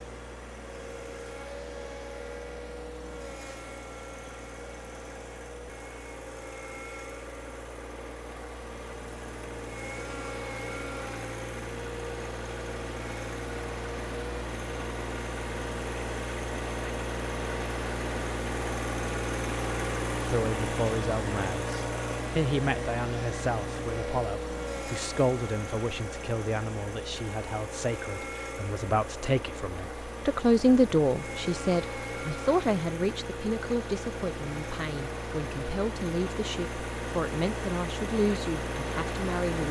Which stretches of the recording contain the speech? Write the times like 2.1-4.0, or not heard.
20.2-39.6.